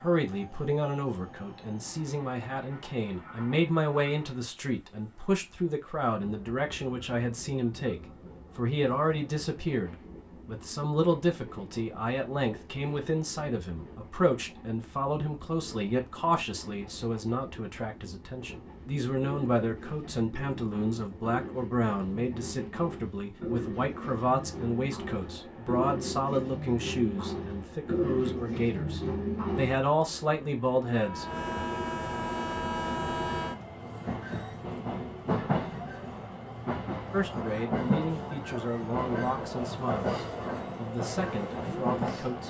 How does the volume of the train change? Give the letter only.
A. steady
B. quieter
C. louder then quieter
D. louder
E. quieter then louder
D.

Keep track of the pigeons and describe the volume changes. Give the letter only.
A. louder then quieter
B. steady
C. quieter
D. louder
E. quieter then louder
D.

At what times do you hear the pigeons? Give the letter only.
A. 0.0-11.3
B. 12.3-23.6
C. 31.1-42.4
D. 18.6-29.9
D.